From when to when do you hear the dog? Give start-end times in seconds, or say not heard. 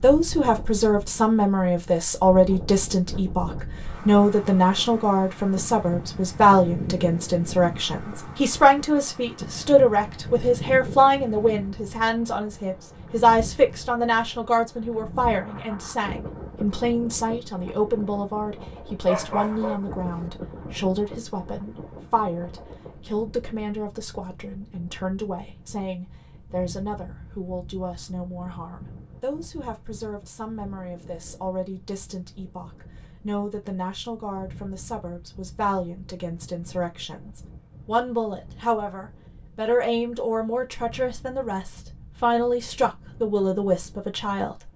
19.1-20.3.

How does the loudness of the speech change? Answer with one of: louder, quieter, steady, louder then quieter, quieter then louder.
quieter then louder.